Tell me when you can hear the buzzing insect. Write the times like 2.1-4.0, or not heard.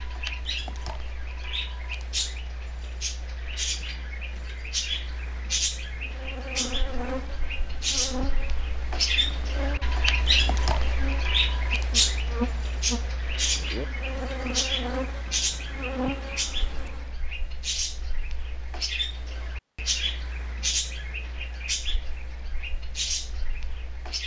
5.9-17.1.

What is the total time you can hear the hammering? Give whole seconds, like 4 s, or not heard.
not heard.